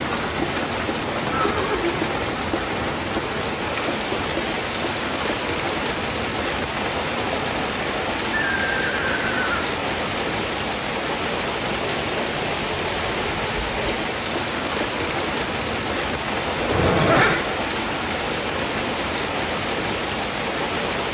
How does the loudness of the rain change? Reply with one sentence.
The loudness of the rain stays about the same.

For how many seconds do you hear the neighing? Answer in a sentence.
The neighing can be heard for 3 seconds in total.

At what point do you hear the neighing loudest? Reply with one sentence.
The loudest moment of the neighing is at 17 seconds.